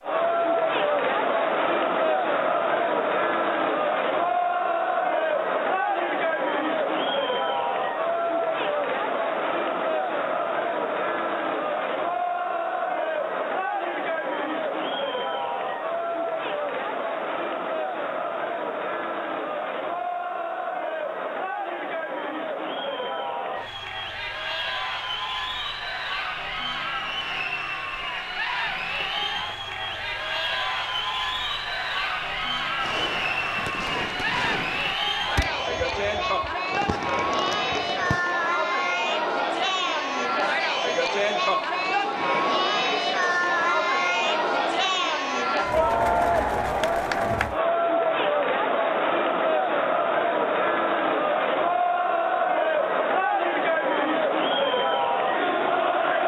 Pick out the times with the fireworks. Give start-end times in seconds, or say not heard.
32.8-38.2.